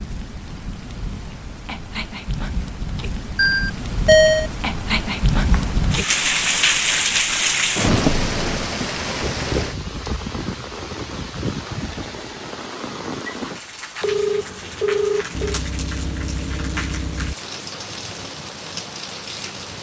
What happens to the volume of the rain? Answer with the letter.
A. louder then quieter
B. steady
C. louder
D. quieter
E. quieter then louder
A.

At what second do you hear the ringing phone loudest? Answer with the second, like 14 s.
4 s.